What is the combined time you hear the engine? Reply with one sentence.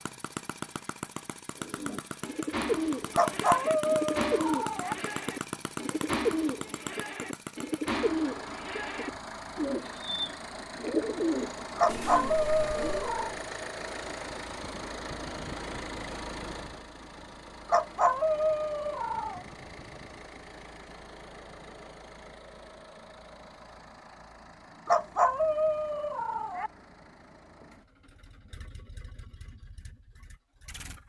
The engine can be heard for 31 seconds in total.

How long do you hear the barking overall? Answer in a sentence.
You can hear the barking for 7 seconds altogether.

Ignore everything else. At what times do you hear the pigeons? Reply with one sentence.
You can hear the pigeons from 1.6 to 13.3 s.